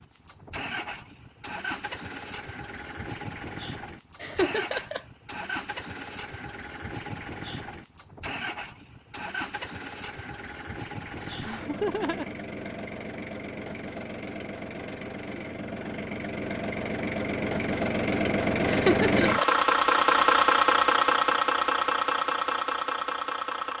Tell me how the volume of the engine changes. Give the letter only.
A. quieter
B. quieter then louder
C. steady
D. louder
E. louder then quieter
D.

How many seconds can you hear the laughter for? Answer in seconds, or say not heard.
3 s.